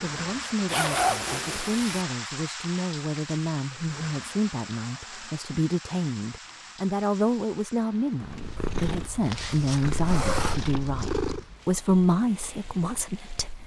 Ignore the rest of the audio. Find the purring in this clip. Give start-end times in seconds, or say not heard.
8.2-11.4.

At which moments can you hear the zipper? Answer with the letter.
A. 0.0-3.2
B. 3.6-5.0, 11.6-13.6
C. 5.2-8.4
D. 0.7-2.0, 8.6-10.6
D.